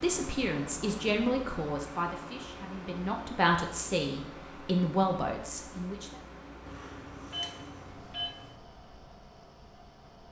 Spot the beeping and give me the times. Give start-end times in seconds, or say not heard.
6.7-8.6.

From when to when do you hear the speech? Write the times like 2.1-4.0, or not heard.
0.0-6.2.